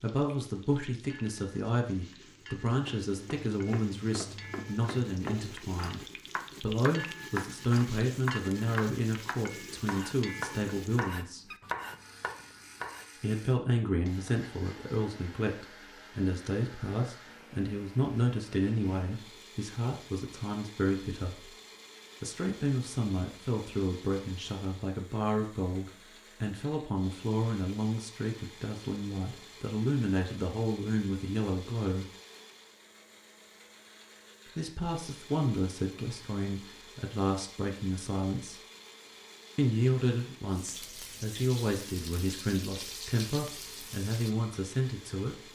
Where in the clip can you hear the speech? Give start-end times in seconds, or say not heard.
0.0-11.4, 13.2-21.5, 22.2-32.1, 34.5-38.5, 39.5-45.4.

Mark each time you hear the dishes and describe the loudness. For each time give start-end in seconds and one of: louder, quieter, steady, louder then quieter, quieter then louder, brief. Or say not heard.
not heard.